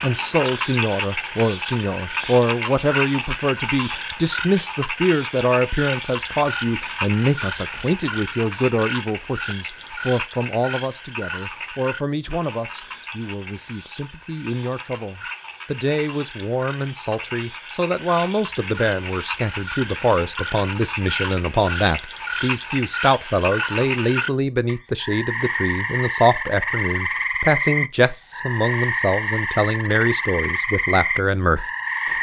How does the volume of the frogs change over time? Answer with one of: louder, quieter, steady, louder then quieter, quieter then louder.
quieter then louder.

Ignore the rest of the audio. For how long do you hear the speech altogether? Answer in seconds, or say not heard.
32 s.